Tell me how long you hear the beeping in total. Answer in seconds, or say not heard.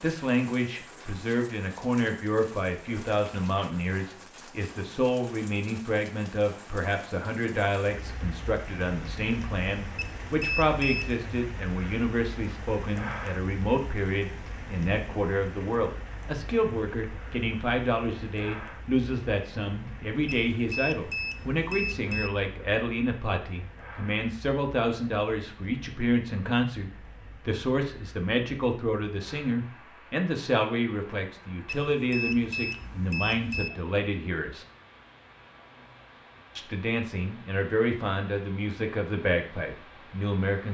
5 s.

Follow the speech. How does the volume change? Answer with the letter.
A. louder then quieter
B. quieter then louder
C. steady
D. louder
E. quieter
C.